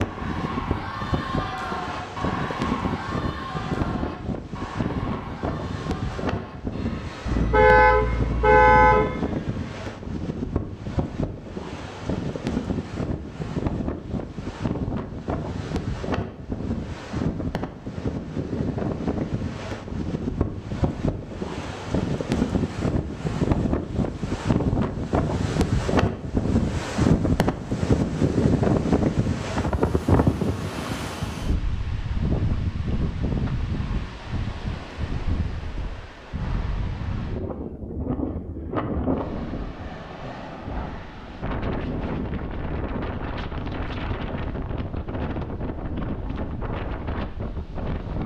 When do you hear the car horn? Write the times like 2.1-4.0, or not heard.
7.3-9.1.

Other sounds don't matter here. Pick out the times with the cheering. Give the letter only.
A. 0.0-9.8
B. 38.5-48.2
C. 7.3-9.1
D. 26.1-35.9
A.